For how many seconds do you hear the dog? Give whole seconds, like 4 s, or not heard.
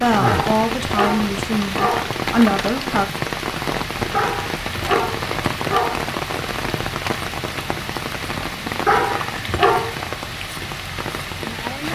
5 s.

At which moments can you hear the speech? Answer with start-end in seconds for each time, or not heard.
0.0-3.0.